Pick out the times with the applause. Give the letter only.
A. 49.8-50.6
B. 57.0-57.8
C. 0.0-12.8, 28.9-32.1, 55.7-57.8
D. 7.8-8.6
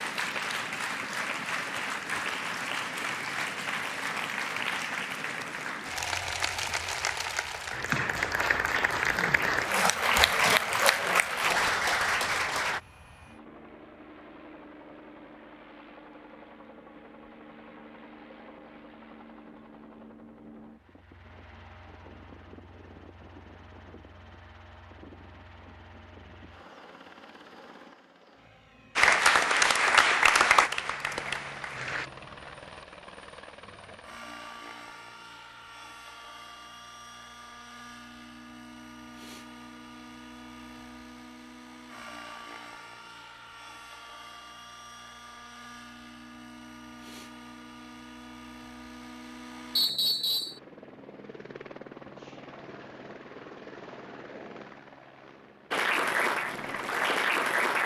C.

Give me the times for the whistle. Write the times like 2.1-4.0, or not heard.
49.8-50.6.